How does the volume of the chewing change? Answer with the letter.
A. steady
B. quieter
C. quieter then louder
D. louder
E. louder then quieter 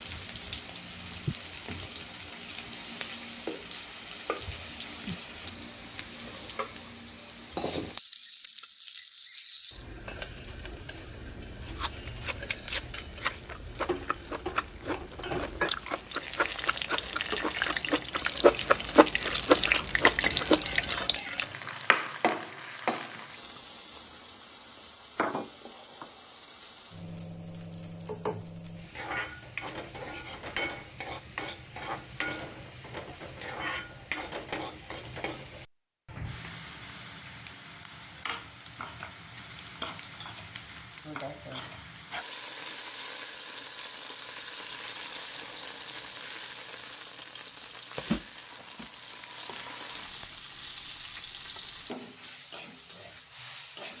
D.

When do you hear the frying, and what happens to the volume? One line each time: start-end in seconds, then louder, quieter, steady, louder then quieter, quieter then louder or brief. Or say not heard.
0.0-53.9 louder then quieter.